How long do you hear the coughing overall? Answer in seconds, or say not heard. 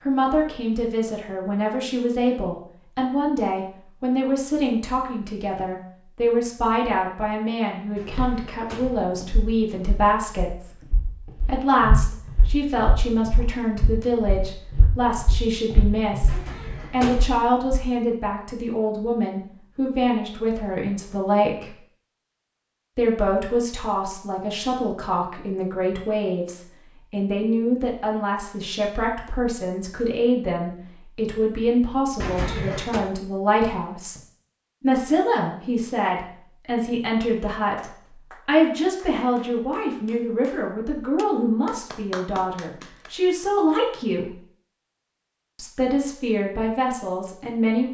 3 s.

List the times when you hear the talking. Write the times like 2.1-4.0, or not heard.
0.0-10.8, 11.4-21.8, 22.9-34.2, 34.8-44.4, 45.5-47.8.